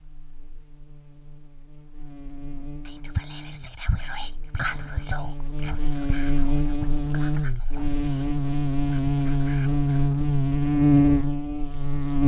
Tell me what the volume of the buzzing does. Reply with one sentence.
The loudness of the buzzing goes up.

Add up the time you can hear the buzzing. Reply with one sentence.
You can hear the buzzing for 12 seconds altogether.